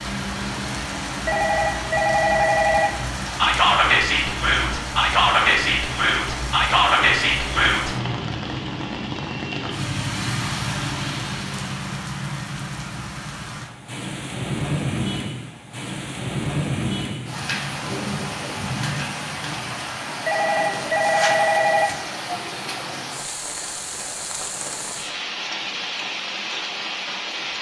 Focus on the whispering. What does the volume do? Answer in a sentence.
The loudness of the whispering stays about the same.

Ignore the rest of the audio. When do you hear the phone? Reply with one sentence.
The phone can be heard from 1.2 to 3.0 s and from 20.2 to 21.9 s.